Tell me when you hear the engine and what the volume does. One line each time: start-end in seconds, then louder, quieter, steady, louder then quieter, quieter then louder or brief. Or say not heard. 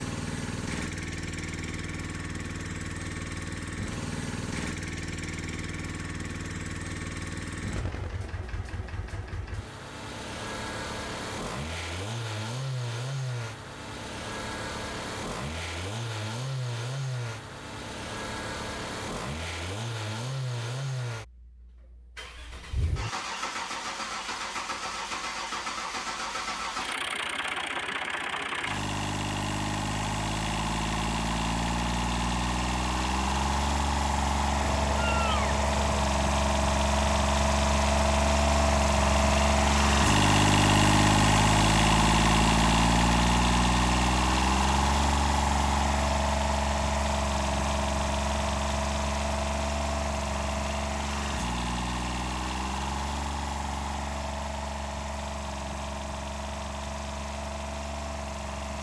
0.0-58.7 louder then quieter.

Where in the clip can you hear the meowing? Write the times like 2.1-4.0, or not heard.
34.5-36.0.